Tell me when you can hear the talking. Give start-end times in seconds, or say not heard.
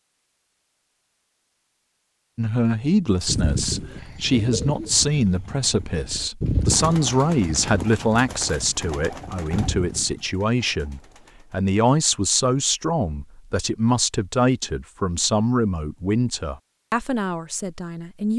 2.4-18.3.